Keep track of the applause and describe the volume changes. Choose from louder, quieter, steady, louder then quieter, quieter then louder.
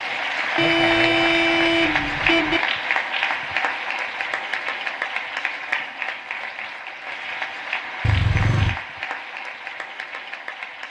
quieter.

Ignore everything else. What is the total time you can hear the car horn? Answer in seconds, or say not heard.
3 s.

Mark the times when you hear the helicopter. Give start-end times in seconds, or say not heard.
not heard.